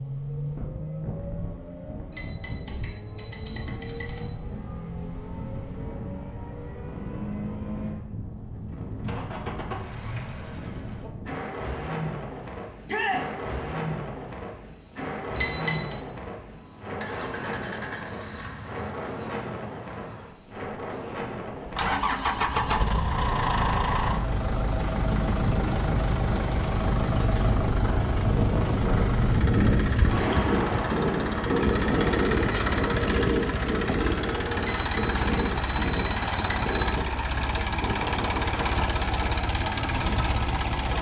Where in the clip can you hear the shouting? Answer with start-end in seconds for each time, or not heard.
12.8-13.2.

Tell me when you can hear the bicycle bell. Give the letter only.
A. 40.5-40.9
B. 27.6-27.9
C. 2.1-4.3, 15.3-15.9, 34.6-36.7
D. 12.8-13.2
C.